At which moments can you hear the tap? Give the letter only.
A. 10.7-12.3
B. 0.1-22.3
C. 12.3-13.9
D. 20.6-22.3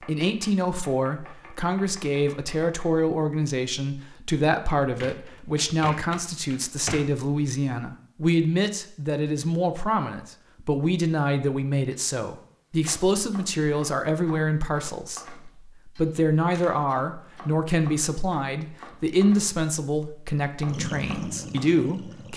D.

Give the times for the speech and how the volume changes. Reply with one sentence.
The speech can be heard from 0.1 to 22.3 s, at a steady volume.